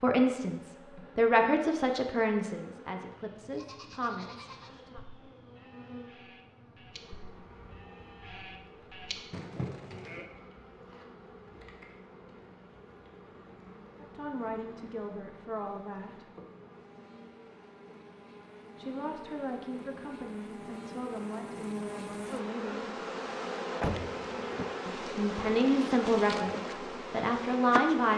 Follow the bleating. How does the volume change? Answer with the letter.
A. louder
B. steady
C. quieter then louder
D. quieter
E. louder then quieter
C.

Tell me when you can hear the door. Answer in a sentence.
You can hear the door from 23.8 to 24.7 s.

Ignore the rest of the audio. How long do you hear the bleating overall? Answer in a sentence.
The bleating can be heard for 7 seconds in total.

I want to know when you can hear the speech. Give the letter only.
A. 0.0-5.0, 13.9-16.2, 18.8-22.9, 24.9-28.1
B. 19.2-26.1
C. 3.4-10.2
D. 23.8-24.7
A.